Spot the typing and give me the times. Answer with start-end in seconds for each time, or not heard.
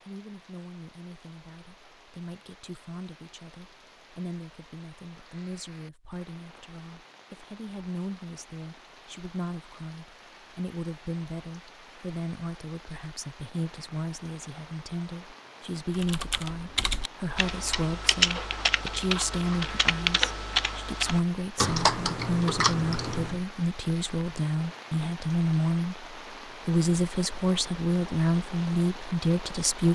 15.9-23.4.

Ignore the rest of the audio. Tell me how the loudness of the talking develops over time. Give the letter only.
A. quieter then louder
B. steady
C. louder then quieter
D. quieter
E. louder
E.